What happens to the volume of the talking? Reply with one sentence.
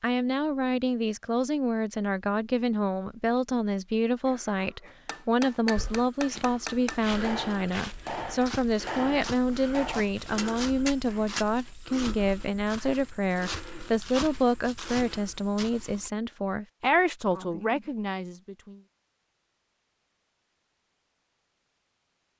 The loudness of the talking stays about the same.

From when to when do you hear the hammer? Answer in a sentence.
You can hear the hammer from 4.8 to 11.4 s.